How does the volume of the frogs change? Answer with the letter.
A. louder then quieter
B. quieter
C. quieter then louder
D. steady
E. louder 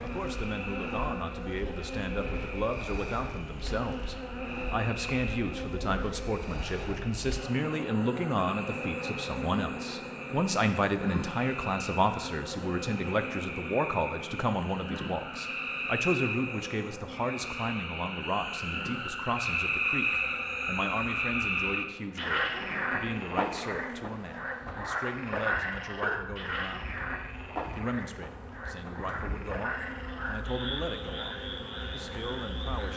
A.